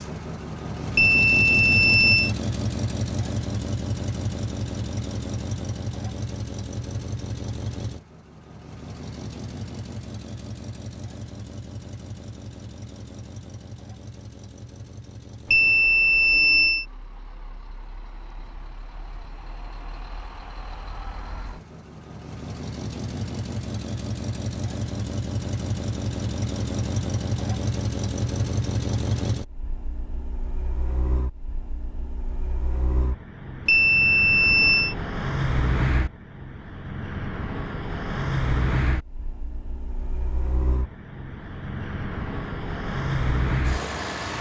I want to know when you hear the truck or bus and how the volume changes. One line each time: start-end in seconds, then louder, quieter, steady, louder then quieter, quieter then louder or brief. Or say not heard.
0.0-44.3 quieter then louder.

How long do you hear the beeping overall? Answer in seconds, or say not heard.
4 s.